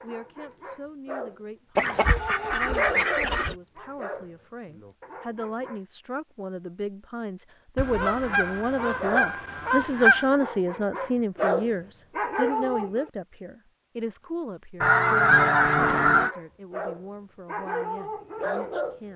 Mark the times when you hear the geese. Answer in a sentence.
The geese can be heard from 1.8 to 3.5 s, from 7.8 to 10.3 s and from 14.8 to 16.4 s.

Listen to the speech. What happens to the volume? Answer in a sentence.
The loudness of the speech goes up, then down.